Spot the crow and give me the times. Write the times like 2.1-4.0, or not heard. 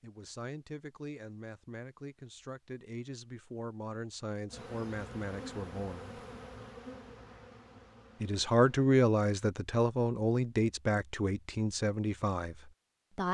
not heard.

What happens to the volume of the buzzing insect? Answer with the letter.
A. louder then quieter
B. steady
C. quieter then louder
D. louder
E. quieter
E.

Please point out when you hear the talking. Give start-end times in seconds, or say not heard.
0.0-6.2, 8.2-13.2.